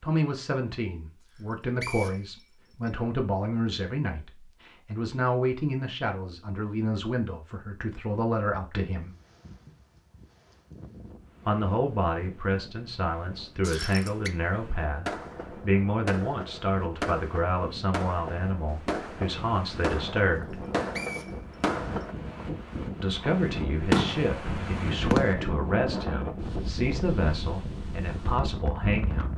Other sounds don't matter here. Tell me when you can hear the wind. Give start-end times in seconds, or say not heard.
8.9-29.3.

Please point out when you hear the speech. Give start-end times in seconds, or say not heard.
0.0-9.2, 11.4-20.6, 23.0-29.3.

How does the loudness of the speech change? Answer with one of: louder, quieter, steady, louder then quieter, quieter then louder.
steady.